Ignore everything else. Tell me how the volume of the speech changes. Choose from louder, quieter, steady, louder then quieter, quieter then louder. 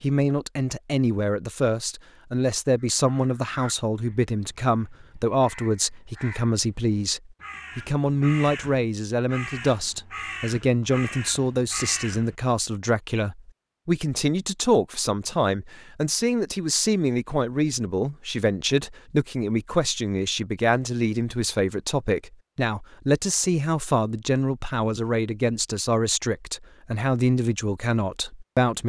steady.